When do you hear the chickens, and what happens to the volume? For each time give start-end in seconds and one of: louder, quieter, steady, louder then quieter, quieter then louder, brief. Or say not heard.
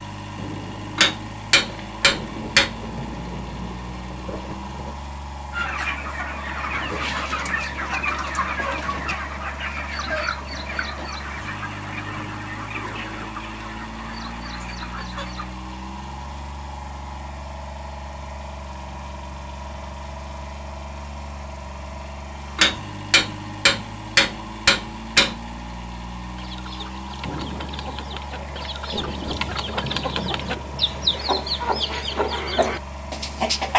5.5-15.6 quieter
26.4-33.7 louder.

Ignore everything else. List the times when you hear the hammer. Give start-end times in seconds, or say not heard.
0.9-2.7, 22.6-25.4.